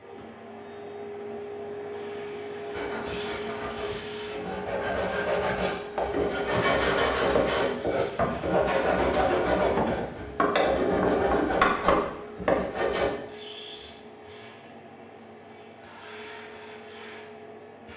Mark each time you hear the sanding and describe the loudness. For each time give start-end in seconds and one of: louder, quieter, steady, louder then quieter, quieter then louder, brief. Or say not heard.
2.7-13.1 louder.